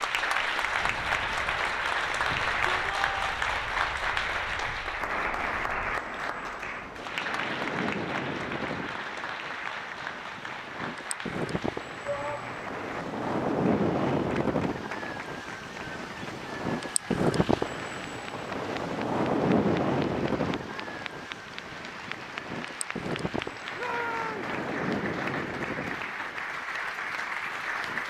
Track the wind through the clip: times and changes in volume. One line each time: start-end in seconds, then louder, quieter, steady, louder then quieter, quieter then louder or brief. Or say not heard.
0.0-28.0 louder then quieter.